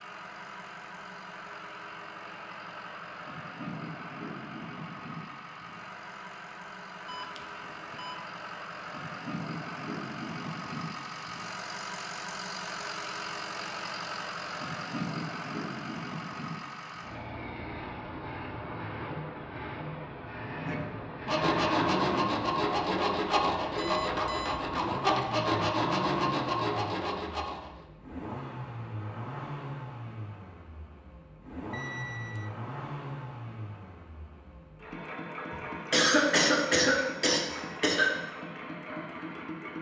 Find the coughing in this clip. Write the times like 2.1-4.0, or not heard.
35.5-38.1.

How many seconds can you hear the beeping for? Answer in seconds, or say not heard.
3 s.